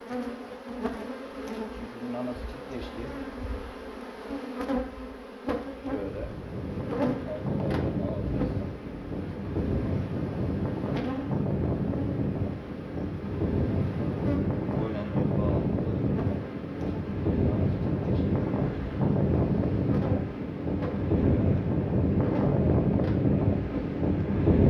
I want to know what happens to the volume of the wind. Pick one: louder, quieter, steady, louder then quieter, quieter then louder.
louder.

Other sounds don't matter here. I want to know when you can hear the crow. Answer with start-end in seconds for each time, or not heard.
not heard.